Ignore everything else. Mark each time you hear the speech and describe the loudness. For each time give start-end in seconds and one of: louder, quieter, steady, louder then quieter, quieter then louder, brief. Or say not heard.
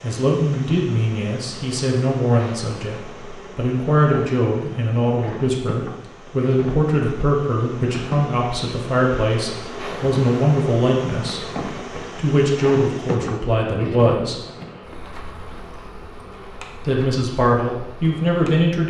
0.0-14.4 steady
16.9-18.8 brief.